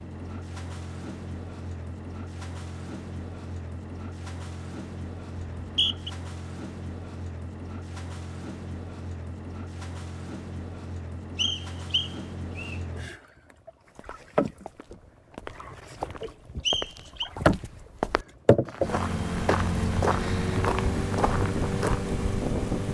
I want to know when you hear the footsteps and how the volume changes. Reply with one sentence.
The footsteps can be heard from 13.9 to 22.1 s, getting louder.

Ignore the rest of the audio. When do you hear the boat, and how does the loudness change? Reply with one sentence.
You can hear the boat from 0.0 to 22.8 s, getting louder.